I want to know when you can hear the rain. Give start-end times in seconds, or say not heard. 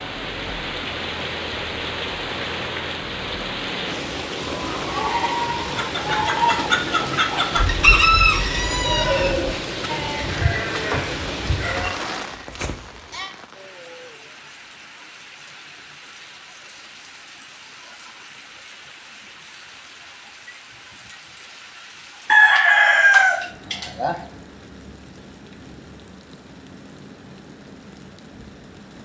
0.0-28.9.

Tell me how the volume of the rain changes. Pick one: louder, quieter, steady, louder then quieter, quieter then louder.
quieter.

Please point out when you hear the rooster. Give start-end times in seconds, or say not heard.
5.8-9.3, 22.2-24.1.